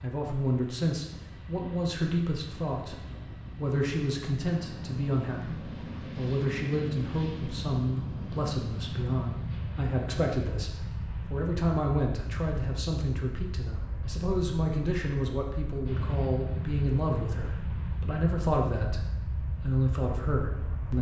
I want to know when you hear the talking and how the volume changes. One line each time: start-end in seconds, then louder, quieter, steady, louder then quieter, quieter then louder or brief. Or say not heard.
0.0-20.9 steady.